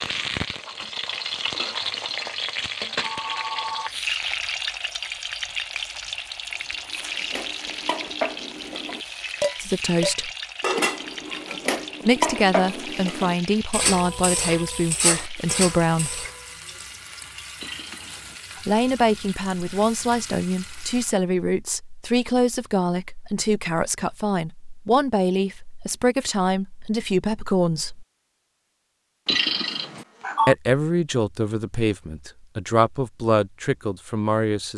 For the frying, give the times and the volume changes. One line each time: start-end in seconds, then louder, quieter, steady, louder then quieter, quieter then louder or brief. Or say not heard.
0.0-21.1 quieter.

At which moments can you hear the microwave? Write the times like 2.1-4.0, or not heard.
not heard.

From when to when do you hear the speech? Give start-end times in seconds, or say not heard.
9.6-10.3, 12.1-16.2, 18.6-28.1, 30.4-34.7.